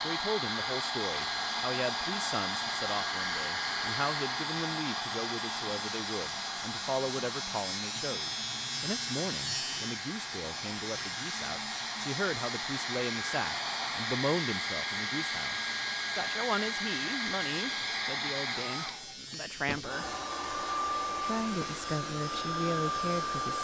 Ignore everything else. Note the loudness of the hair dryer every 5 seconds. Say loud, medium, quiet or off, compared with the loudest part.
loud, medium, loud, loud, loud.